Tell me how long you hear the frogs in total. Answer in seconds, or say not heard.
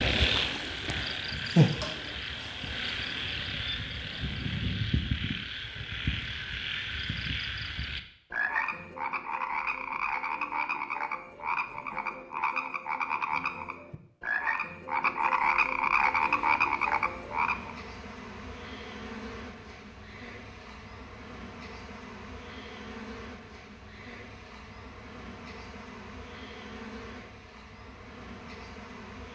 18 s.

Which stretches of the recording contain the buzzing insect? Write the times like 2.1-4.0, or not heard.
0.0-4.8, 16.1-29.3.